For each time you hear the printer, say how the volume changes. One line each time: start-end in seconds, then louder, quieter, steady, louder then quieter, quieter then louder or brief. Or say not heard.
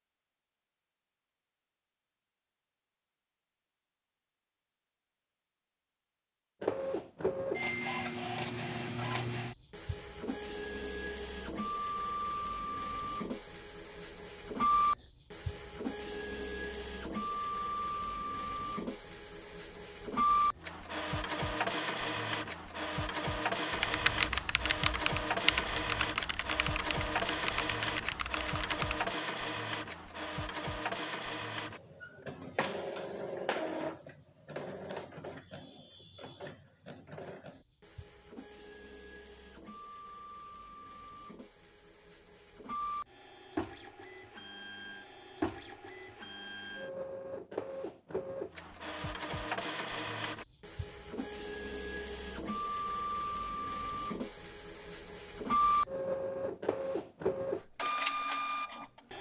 6.6-59.1 quieter then louder.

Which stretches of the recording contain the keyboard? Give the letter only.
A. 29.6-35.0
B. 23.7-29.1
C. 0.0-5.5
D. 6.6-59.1
B.